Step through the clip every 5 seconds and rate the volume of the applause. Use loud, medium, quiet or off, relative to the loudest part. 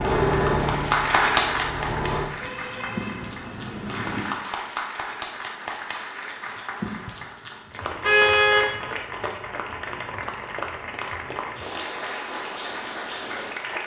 loud, medium, medium.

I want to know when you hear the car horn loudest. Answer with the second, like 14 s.
8 s.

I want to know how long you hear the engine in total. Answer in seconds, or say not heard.
2 s.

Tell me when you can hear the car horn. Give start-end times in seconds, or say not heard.
2.4-4.2, 8.0-8.7.